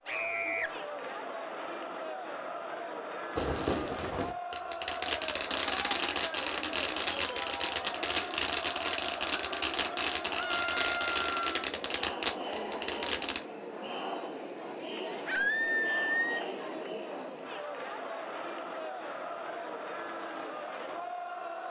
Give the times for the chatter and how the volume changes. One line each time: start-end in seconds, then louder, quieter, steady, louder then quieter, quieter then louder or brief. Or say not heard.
0.0-21.6 steady.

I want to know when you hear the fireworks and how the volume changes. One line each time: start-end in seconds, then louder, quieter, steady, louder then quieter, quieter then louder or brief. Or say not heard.
3.4-13.4 steady.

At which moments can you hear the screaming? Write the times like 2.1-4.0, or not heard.
0.1-0.7, 10.3-11.7, 15.2-16.4.